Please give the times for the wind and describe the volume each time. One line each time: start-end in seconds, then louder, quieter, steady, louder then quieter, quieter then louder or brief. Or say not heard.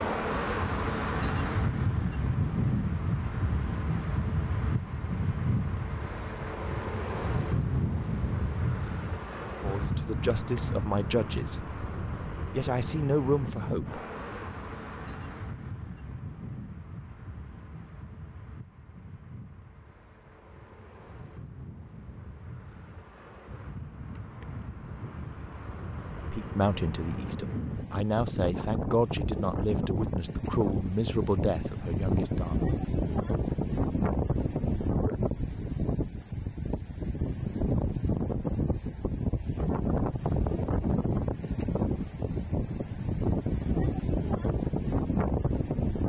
0.0-46.0 quieter then louder.